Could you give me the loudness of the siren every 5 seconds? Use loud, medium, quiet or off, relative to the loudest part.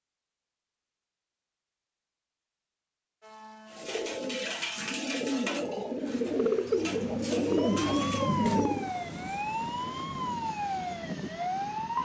off, loud, loud.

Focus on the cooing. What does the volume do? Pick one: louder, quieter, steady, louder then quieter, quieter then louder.
louder.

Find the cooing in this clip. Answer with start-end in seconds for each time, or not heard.
3.7-8.9.